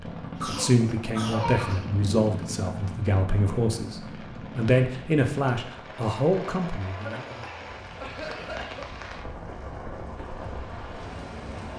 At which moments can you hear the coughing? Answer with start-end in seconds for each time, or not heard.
0.2-1.9, 7.0-8.9.